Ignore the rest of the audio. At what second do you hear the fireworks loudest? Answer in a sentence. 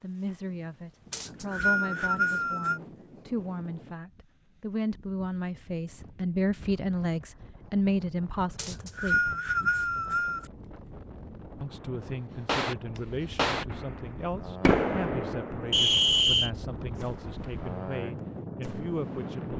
The loudest moment of the fireworks is at 15 seconds.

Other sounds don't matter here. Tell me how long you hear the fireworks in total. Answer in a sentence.
The fireworks can be heard for 7 seconds in total.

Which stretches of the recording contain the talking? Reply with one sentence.
The talking can be heard from 0.0 to 9.3 s and from 11.6 to 19.5 s.